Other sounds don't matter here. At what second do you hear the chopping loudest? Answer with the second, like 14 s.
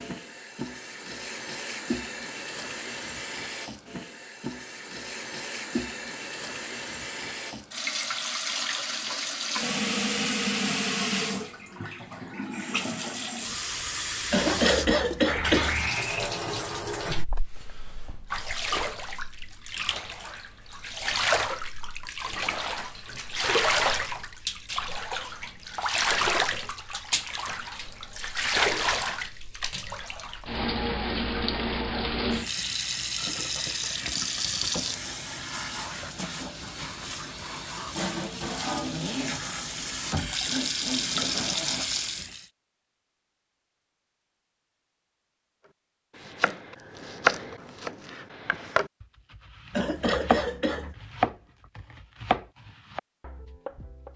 47 s.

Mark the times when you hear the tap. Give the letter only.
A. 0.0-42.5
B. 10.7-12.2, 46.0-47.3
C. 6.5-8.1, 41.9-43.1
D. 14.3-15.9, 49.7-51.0
A.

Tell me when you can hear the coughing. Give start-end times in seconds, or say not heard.
14.3-15.9, 49.7-51.0.